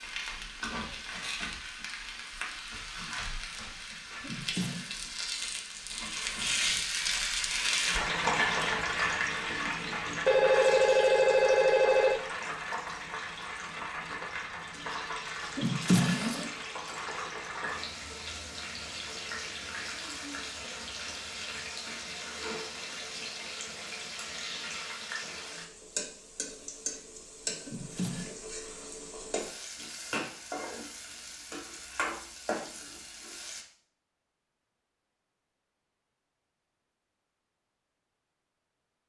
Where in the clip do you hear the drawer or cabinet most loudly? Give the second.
16 s.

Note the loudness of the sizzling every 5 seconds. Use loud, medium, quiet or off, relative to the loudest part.
medium, loud, medium, medium, medium, medium, medium, off.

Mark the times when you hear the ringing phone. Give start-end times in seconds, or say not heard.
10.2-12.2.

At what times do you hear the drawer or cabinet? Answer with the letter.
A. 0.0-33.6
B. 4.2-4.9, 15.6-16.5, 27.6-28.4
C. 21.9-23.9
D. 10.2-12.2
B.